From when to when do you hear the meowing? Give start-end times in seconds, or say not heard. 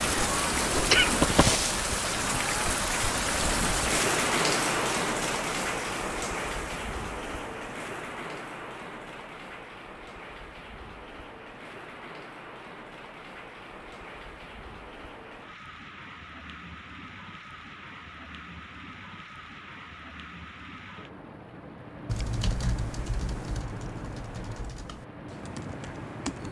not heard.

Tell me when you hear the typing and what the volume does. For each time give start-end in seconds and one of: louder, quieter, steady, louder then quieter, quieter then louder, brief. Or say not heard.
22.1-26.4 quieter.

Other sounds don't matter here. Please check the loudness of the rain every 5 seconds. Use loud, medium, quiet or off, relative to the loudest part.
loud, medium, quiet, quiet, quiet, quiet.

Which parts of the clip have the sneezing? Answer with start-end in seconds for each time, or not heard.
0.8-1.2.